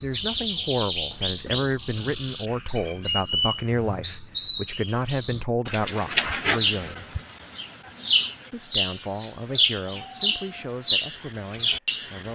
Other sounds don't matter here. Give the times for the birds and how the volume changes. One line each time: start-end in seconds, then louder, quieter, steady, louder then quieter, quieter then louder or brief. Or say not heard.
0.0-12.2 steady.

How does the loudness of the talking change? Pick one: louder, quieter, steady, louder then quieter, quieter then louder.
quieter.